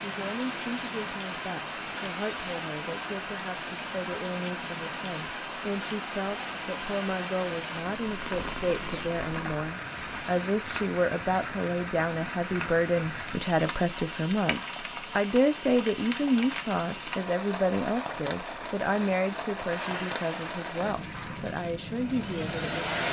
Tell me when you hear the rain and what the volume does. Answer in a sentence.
You can hear the rain from 0.0 to 23.0 s, at a steady volume.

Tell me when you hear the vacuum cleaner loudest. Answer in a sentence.
The loudest moment of the vacuum cleaner is at 23 seconds.